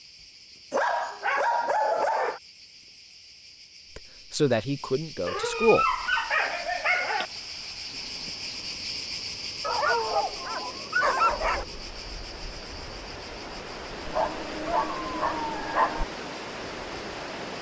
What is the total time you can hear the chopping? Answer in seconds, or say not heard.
not heard.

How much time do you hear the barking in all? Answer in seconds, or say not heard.
8 s.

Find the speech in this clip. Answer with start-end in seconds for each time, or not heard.
4.0-5.8.